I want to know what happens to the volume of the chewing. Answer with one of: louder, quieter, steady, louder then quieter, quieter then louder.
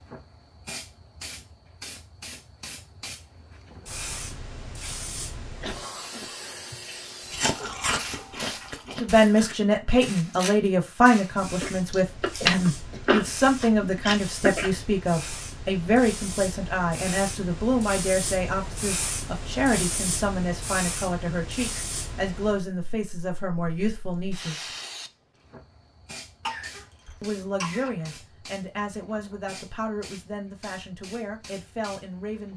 quieter then louder.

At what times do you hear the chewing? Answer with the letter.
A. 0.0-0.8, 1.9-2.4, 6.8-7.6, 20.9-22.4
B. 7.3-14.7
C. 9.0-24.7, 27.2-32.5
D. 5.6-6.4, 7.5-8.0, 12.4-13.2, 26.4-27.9
B.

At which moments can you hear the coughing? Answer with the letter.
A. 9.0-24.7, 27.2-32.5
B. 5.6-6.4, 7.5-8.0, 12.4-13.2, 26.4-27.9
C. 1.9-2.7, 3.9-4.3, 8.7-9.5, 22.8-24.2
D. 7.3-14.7
B.